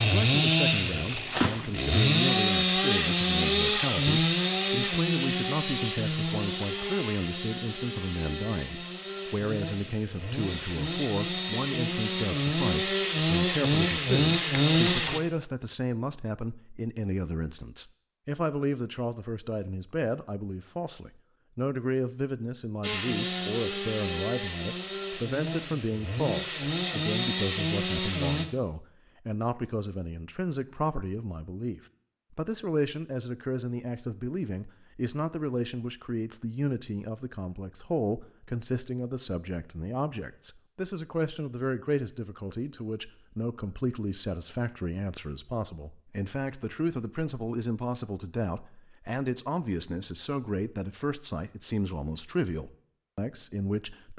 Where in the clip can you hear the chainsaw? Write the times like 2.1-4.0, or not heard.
0.0-15.2, 22.8-28.4.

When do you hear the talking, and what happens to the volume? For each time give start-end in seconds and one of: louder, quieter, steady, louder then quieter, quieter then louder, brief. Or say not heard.
0.0-54.1 steady.